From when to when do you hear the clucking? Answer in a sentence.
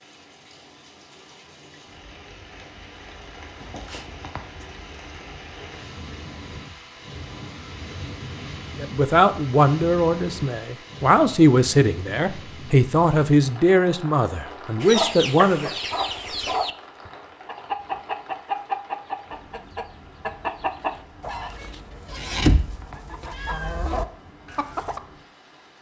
The clucking can be heard from 14.8 to 25.0 s.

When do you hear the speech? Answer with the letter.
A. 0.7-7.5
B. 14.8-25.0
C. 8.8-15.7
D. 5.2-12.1
C.